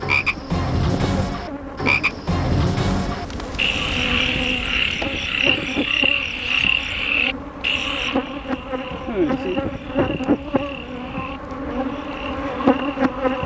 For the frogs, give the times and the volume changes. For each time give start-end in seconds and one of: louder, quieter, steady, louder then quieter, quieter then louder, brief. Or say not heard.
0.0-13.4 quieter.